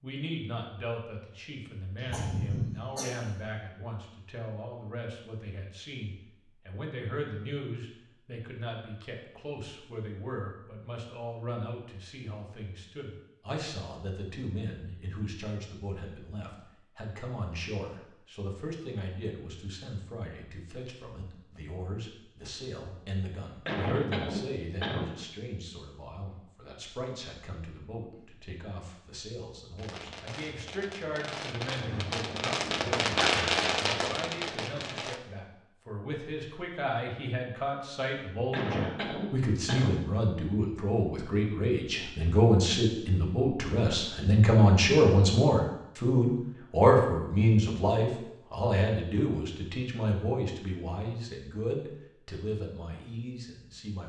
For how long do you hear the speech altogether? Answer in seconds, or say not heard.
54 s.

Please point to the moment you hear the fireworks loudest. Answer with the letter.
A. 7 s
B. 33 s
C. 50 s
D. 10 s
B.